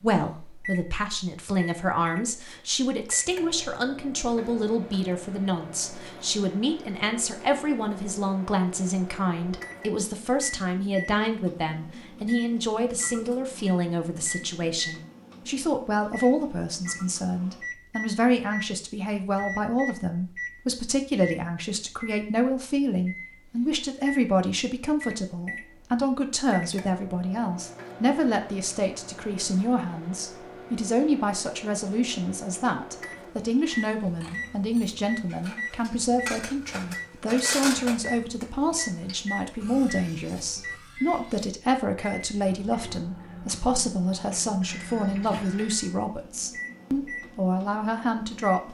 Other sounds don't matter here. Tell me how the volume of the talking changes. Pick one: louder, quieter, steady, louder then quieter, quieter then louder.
steady.